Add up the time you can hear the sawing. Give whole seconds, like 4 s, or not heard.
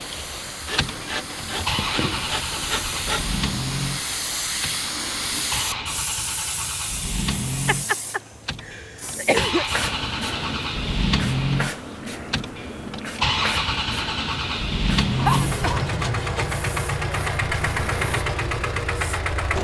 4 s.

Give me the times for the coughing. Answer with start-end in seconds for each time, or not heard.
1.6-2.3, 7.7-9.7, 15.2-16.0.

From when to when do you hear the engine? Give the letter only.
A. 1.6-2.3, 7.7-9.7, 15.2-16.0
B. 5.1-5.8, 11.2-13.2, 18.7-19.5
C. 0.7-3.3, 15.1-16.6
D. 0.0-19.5
D.